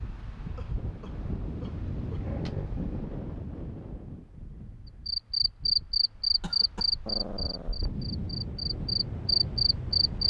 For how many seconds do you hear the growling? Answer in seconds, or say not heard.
2 s.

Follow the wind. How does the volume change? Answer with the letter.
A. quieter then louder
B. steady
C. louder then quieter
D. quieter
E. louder
A.